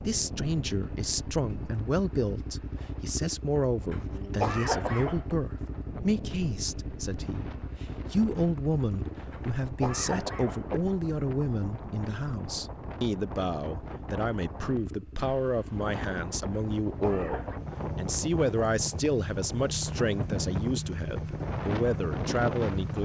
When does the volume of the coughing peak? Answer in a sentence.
The loudest moment of the coughing is at 5 seconds.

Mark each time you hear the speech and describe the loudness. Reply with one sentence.
The speech can be heard from 0.1 to 23.0 s, at a steady volume.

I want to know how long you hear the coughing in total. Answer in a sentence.
You can hear the coughing for 4 seconds altogether.